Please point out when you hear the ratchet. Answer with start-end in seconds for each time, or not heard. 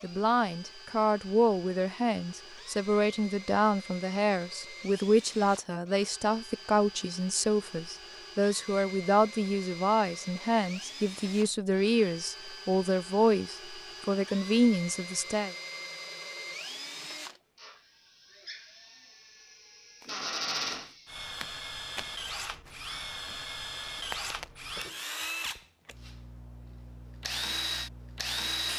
not heard.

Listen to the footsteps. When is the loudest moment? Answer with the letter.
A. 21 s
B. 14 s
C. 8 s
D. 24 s
D.